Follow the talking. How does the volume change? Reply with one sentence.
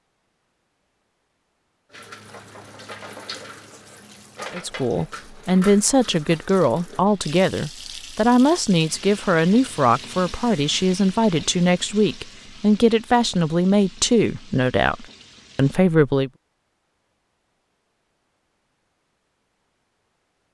The loudness of the talking stays about the same.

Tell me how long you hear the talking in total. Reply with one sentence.
You can hear the talking for 12 seconds altogether.